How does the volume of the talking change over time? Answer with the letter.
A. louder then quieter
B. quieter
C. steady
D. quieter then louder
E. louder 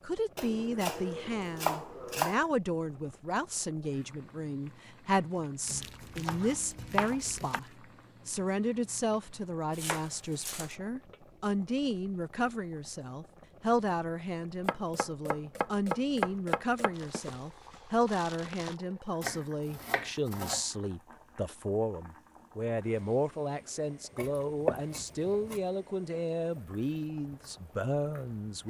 C.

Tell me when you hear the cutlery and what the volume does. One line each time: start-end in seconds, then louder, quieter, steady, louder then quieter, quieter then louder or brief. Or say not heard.
not heard.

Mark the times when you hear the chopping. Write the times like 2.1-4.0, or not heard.
0.3-2.5, 5.7-7.6, 9.8-10.8, 14.7-16.9, 19.2-20.6, 24.1-25.6.